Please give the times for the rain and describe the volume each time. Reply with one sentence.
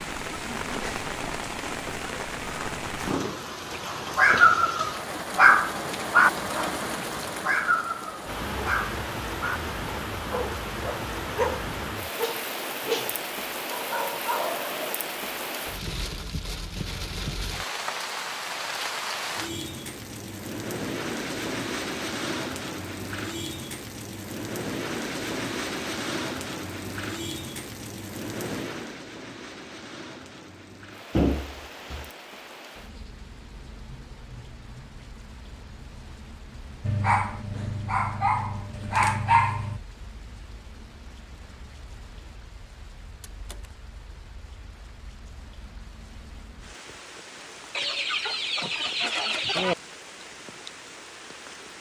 The rain can be heard from 0.0 to 51.7 s, getting quieter.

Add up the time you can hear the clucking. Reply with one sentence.
You can hear the clucking for 2 seconds altogether.